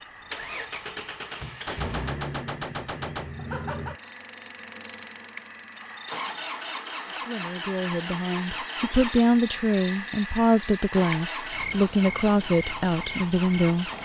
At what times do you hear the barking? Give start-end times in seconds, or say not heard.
not heard.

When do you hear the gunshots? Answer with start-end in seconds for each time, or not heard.
1.6-3.4.